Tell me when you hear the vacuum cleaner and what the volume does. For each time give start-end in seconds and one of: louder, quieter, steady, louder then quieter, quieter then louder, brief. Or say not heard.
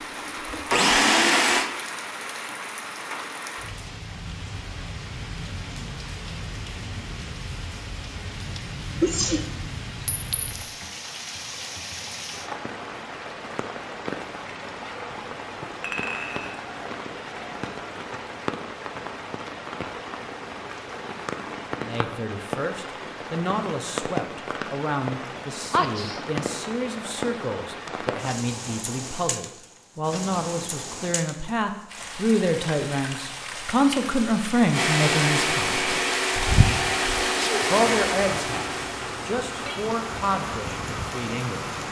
0.0-1.7 brief
34.7-41.8 quieter.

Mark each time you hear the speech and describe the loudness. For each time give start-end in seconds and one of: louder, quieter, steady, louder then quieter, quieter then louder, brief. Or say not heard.
21.8-36.0 louder
37.6-41.8 quieter.